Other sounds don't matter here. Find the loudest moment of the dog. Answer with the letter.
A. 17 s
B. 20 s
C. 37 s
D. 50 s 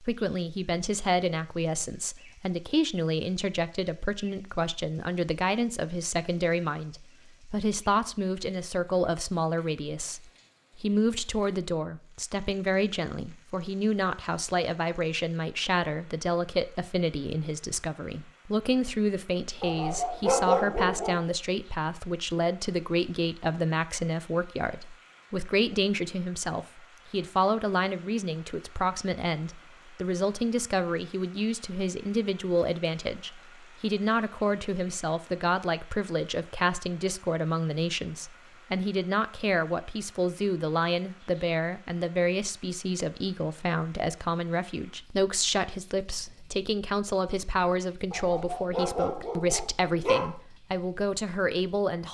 B.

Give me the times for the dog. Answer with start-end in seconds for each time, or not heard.
19.6-21.2, 48.1-50.3.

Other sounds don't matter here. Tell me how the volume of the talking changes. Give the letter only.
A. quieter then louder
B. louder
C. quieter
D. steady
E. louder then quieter
D.